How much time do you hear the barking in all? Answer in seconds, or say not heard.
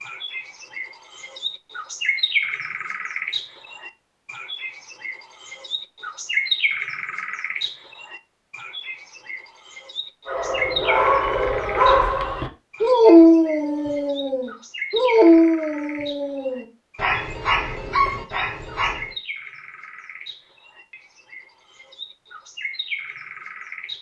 9 s.